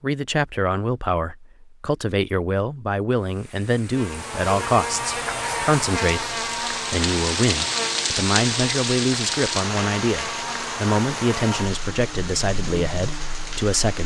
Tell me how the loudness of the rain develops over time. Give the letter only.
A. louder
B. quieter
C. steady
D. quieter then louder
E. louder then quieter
E.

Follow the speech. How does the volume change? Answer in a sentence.
The volume of the speech stays about the same.